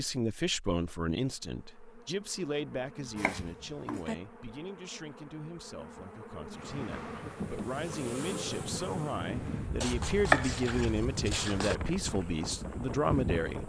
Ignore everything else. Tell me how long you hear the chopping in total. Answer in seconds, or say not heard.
3 s.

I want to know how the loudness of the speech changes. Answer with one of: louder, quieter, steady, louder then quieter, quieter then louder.
quieter then louder.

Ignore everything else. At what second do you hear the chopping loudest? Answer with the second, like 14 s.
10 s.